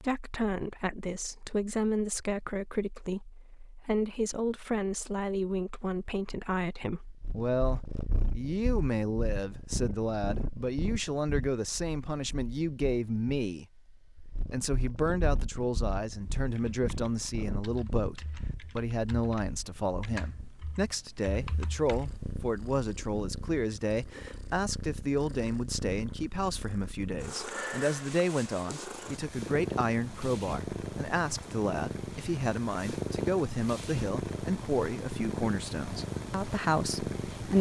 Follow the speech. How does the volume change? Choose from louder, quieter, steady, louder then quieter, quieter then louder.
steady.